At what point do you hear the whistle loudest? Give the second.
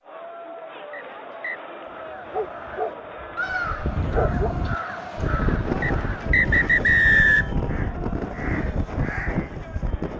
7 s.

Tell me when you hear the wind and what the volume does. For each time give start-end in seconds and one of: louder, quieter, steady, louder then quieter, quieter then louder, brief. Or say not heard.
3.5-10.1 steady.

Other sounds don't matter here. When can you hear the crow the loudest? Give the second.
4 s.